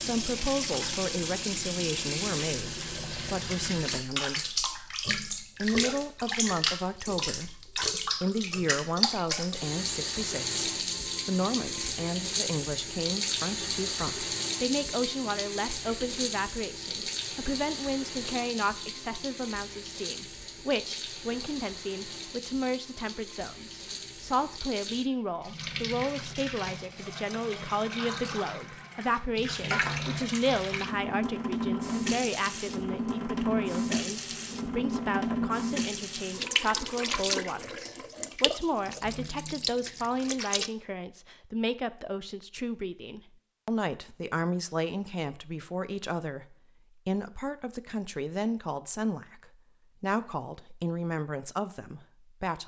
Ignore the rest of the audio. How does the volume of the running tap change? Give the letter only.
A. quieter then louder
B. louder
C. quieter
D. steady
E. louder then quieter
A.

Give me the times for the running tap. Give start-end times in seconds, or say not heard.
0.0-40.7.